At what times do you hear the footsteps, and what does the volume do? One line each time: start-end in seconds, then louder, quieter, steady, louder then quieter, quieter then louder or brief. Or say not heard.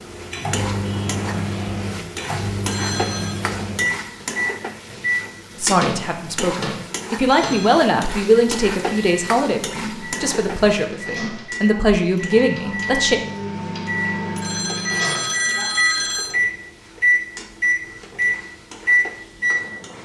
not heard.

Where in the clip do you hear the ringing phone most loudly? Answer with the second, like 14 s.
16 s.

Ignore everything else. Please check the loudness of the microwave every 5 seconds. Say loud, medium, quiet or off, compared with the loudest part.
medium, medium, medium, loud.